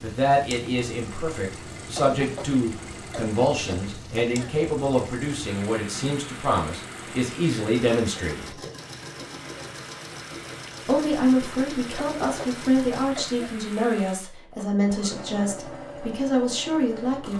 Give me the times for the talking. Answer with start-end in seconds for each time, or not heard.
0.0-8.6, 10.8-17.3.